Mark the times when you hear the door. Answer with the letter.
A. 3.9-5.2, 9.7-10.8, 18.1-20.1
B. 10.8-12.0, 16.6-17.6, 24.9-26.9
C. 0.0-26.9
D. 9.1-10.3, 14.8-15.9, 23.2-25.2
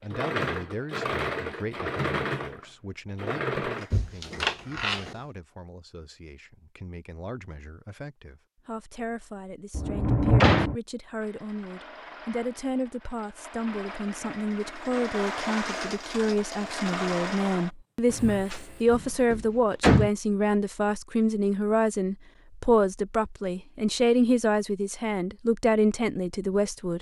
A.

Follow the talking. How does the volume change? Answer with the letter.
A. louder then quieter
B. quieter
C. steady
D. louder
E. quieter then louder
D.